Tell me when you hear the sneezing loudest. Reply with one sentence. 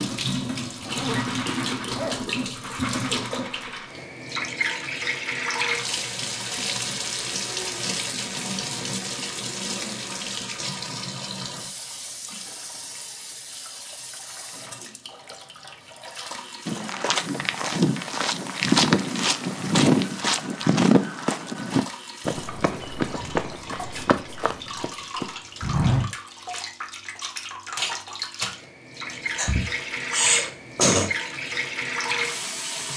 The loudest moment of the sneezing is at 31 seconds.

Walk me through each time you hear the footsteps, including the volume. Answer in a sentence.
You can hear the footsteps from 16.6 to 26.1 s, getting quieter.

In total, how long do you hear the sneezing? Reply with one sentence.
You can hear the sneezing for 2 seconds altogether.